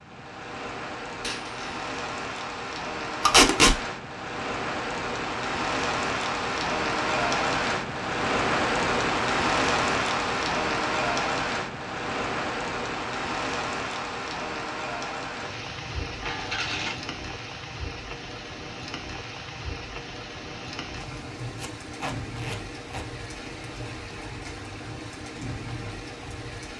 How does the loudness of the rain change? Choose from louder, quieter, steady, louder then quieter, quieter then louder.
louder then quieter.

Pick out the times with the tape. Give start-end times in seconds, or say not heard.
3.2-3.8, 21.6-23.1.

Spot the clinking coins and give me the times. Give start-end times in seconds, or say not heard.
1.1-1.7, 16.2-17.0.